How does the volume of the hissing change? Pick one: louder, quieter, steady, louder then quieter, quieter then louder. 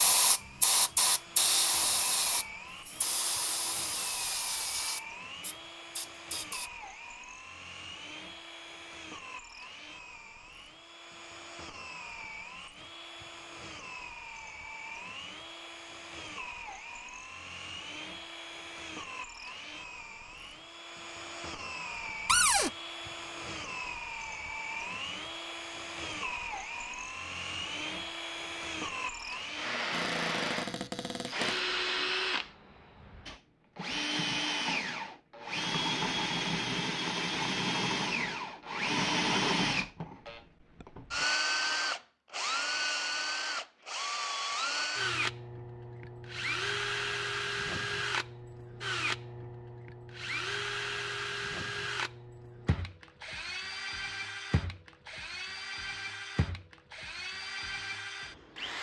quieter.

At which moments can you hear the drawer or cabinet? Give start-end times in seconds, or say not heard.
22.2-22.7, 29.9-31.6.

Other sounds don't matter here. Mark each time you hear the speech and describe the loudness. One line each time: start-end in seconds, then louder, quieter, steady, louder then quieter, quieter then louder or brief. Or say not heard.
not heard.